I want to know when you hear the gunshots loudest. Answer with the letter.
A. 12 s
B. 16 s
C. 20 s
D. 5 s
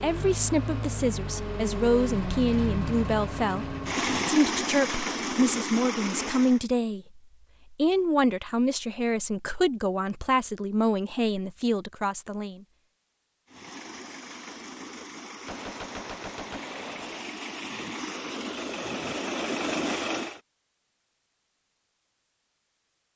B.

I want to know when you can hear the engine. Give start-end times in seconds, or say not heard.
0.0-6.6, 13.4-20.4.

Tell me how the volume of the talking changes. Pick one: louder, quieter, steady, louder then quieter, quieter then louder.
steady.